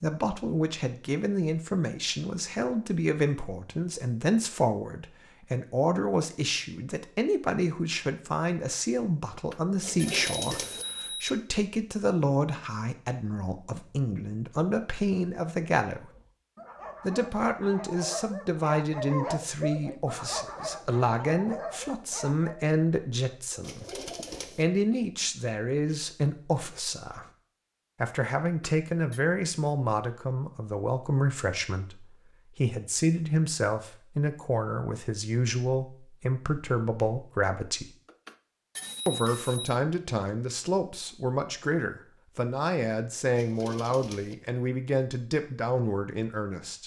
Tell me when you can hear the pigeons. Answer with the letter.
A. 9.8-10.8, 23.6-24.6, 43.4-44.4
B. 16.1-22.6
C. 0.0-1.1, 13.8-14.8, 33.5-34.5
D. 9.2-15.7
A.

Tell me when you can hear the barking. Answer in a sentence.
The barking can be heard from 16.1 to 22.6 s.